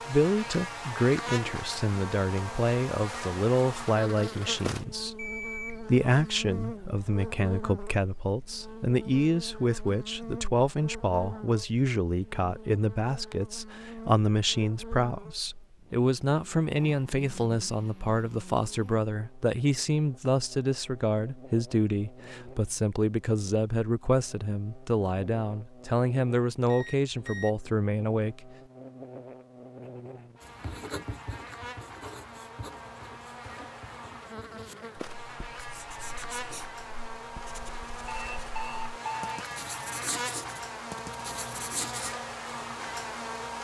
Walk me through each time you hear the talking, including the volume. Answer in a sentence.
The talking can be heard from 0.1 to 28.5 s, at a steady volume.